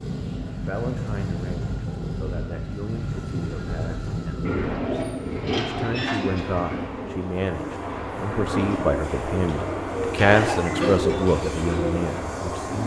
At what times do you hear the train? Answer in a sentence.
You can hear the train from 0.0 to 12.8 s.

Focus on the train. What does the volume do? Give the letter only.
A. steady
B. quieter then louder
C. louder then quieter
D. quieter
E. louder
B.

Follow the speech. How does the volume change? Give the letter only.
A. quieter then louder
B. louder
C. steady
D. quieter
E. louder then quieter
B.